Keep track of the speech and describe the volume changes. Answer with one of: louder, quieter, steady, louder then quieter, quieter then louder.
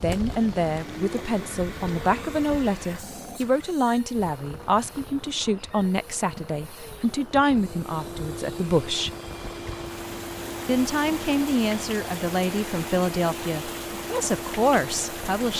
steady.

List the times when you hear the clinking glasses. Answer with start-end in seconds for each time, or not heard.
not heard.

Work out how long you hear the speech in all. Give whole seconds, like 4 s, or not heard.
14 s.